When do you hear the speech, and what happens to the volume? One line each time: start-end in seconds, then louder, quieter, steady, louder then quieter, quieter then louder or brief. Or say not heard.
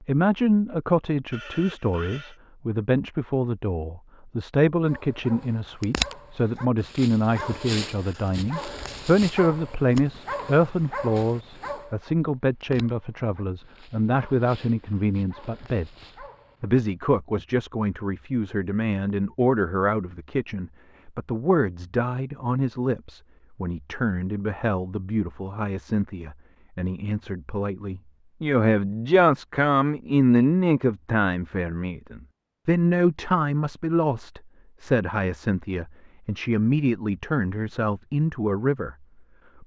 0.0-39.0 steady.